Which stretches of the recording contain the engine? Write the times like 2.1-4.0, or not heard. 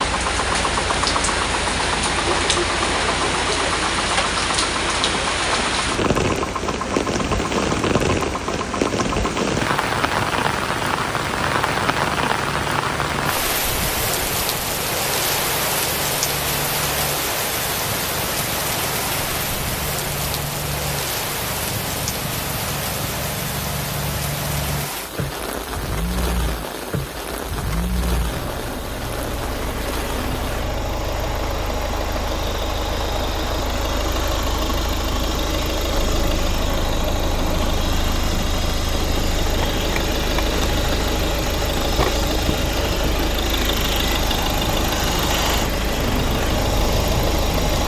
0.0-47.8.